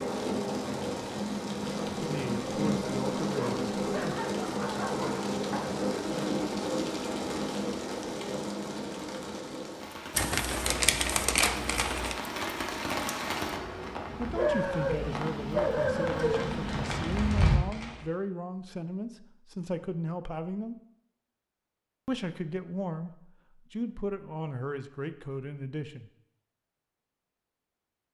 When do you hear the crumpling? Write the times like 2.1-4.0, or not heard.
10.2-12.2, 16.1-18.1.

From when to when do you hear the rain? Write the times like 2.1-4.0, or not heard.
0.0-17.6.